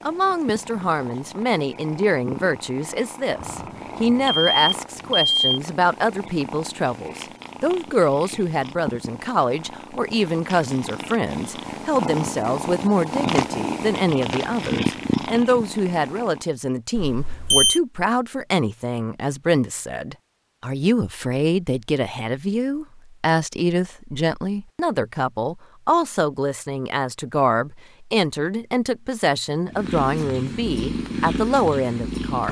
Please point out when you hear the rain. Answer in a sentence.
The rain can't be heard in this clip.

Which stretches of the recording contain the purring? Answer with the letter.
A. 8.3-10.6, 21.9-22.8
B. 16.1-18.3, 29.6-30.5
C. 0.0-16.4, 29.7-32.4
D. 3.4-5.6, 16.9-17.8
C.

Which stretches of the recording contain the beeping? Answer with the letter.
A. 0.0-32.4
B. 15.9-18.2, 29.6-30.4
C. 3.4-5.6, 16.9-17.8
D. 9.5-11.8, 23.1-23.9
C.